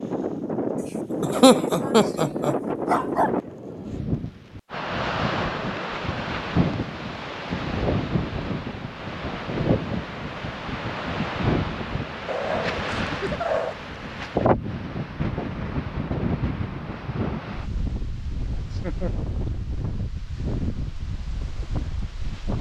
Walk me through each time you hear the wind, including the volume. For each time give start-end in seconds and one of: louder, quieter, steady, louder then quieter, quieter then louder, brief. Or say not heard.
0.0-22.5 quieter.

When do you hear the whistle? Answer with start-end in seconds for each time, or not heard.
not heard.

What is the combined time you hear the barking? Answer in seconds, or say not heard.
2 s.